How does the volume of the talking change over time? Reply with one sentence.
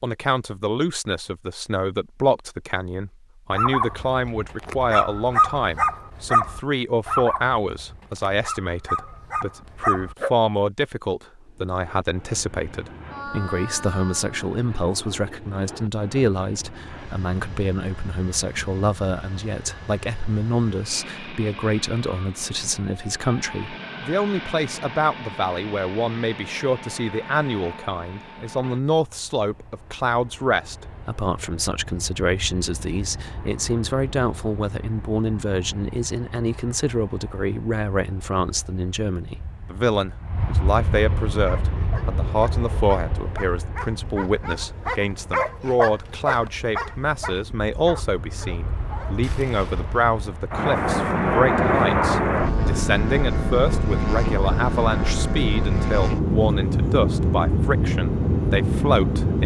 The loudness of the talking stays about the same.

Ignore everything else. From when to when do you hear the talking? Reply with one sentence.
You can hear the talking from 0.0 to 59.4 s.